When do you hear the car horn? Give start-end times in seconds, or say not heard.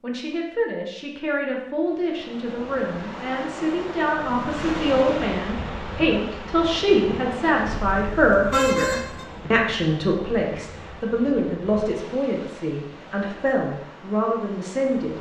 7.7-9.2.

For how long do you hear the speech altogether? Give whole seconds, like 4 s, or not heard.
15 s.